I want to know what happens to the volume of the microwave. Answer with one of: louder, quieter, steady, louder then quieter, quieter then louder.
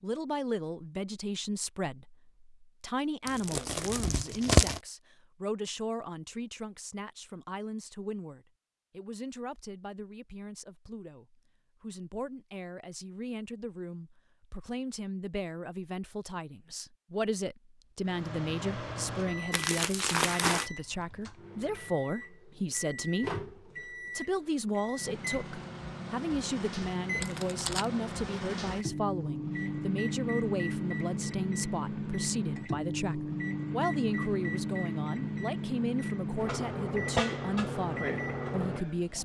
louder.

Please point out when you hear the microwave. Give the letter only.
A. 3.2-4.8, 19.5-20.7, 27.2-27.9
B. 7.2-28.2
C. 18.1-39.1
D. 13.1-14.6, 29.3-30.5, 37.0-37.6
C.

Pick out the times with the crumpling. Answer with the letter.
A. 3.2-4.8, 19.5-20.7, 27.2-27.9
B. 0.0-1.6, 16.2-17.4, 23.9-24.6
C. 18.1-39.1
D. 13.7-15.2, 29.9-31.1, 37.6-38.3
A.